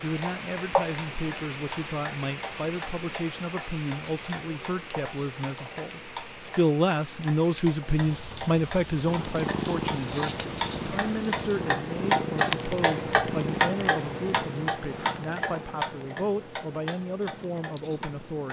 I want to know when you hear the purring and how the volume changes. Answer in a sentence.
You can hear the purring from 9.1 to 18.4 s, getting quieter.